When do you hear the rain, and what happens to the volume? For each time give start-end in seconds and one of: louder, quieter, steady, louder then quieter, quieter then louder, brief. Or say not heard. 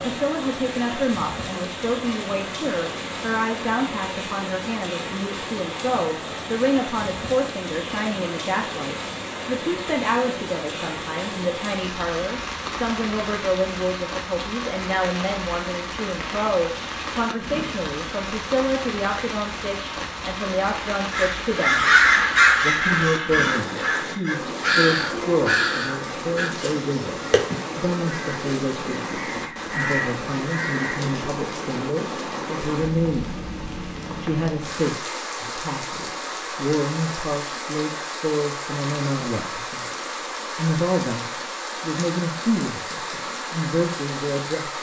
0.0-44.7 steady.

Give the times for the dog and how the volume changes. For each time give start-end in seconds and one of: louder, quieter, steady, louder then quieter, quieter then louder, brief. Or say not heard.
not heard.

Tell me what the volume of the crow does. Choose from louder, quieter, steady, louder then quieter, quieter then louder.
quieter.